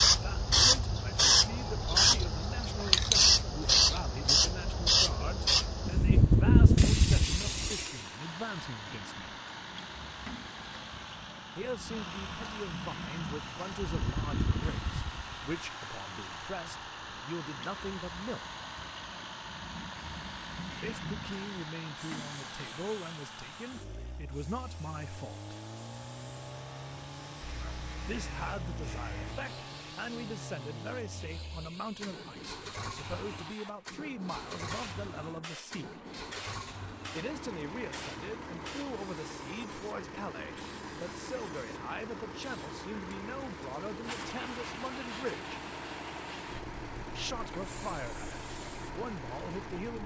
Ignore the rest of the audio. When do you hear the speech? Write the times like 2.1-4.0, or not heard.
0.1-9.3, 11.6-18.4, 20.8-25.6, 28.1-36.0, 37.1-45.5, 47.1-50.0.